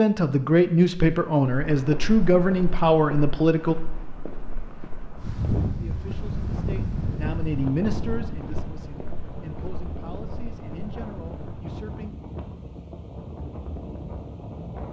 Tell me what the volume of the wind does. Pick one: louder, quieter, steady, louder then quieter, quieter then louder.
quieter.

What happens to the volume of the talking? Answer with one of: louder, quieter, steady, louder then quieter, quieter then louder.
quieter.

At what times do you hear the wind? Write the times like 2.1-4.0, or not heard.
5.2-14.8.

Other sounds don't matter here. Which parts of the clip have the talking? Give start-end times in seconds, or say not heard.
0.0-3.8, 5.8-12.1.